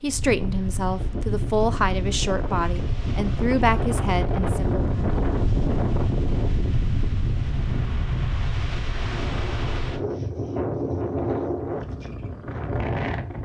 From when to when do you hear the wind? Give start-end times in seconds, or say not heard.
0.0-13.3.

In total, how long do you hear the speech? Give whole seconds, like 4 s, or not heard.
5 s.